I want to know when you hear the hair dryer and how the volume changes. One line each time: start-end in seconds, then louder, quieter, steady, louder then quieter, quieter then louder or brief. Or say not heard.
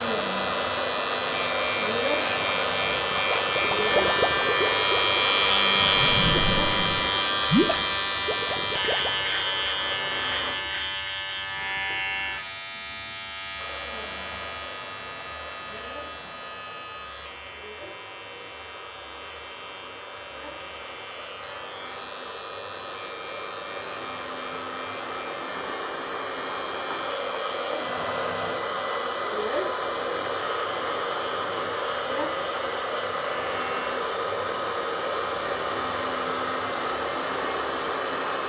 0.0-10.6 quieter
13.6-38.4 louder.